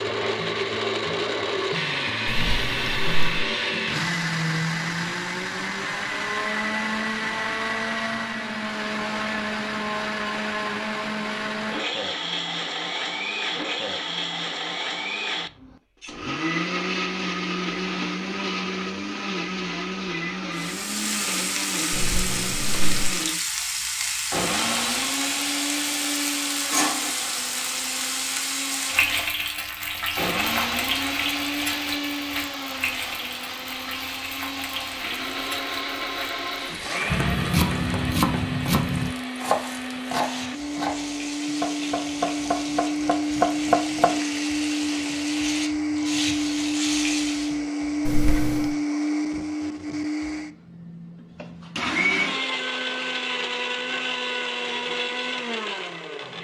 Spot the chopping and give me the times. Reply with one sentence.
The chopping can be heard from 37.1 to 44.1 s.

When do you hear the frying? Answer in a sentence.
You can hear the frying from 20.6 to 47.6 s.